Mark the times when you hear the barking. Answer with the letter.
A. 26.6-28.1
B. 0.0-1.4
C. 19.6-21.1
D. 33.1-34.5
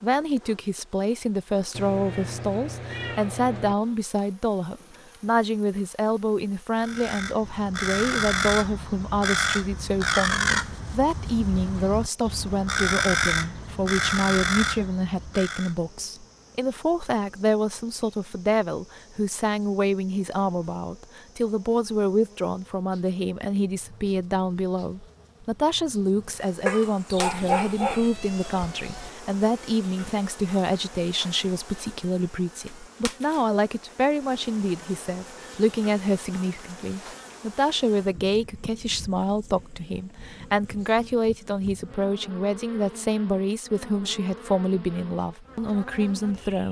A.